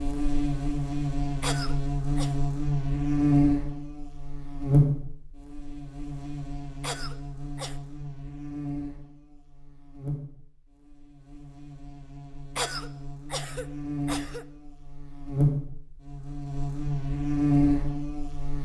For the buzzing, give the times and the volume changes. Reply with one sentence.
The buzzing can be heard from 0.0 to 18.5 s, getting quieter then louder.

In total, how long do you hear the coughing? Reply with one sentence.
The coughing can be heard for 4 seconds in total.